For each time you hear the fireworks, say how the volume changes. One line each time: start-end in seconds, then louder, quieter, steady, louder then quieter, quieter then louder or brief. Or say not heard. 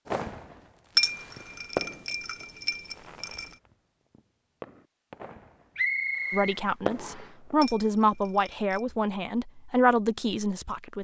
0.1-7.6 quieter then louder.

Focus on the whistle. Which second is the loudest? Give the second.
6 s.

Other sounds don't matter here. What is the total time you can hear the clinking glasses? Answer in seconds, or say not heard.
4 s.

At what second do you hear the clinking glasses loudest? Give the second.
1 s.